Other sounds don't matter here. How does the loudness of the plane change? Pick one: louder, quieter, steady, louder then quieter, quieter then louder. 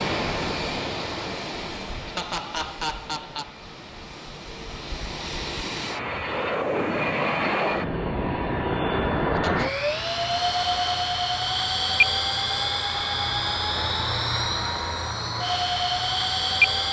louder.